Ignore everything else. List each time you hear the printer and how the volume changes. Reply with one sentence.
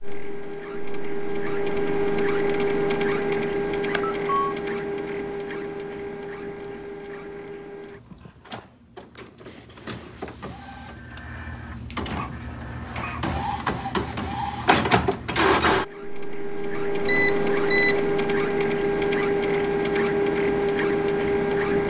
The printer can be heard from 0.0 to 21.8 s, getting quieter then louder.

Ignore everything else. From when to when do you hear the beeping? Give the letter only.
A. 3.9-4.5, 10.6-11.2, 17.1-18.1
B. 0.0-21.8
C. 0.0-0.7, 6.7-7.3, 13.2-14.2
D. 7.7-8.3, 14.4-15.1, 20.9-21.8
A.